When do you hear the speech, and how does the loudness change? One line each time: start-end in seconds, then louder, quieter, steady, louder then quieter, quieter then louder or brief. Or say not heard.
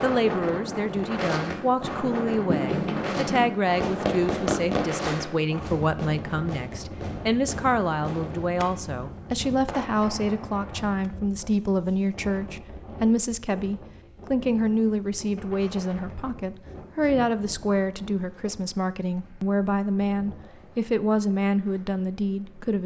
0.0-22.8 steady.